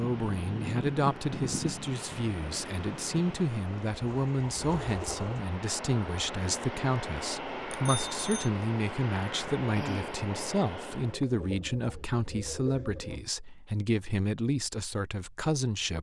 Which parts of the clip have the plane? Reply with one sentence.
The plane can be heard from 0.0 to 11.2 s.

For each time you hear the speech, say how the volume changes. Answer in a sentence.
The speech can be heard from 0.0 to 15.9 s, at a steady volume.